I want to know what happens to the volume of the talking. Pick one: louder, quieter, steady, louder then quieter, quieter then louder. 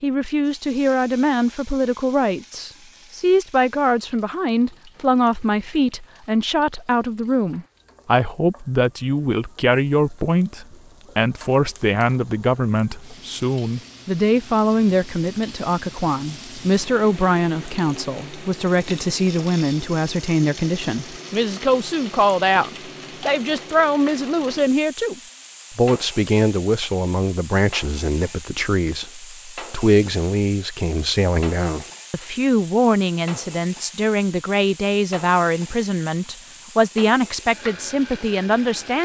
steady.